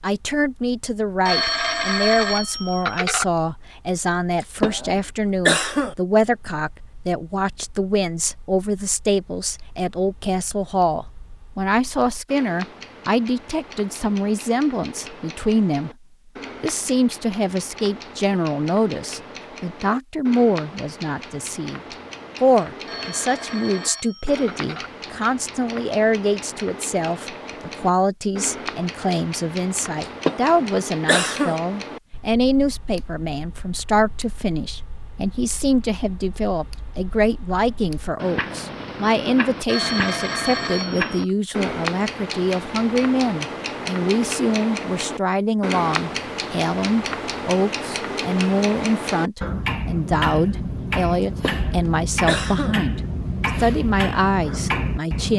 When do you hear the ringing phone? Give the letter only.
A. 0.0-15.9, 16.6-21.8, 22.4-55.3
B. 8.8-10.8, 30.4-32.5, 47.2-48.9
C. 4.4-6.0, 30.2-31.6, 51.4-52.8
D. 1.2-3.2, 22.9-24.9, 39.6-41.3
D.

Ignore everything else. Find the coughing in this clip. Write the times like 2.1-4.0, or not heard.
4.4-6.0, 30.2-31.6, 51.4-52.8.